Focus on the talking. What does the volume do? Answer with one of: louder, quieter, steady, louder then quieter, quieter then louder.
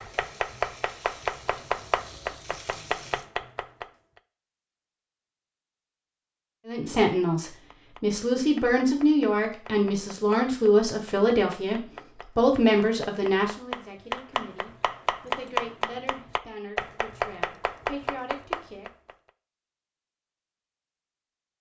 quieter.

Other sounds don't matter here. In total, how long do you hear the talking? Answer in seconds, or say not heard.
12 s.